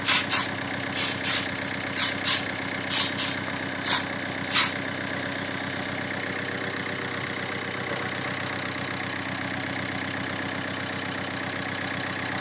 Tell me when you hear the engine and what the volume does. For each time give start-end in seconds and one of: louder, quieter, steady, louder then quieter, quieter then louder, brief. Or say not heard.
0.0-12.3 steady.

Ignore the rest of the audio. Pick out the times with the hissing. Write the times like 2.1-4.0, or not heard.
0.0-5.8.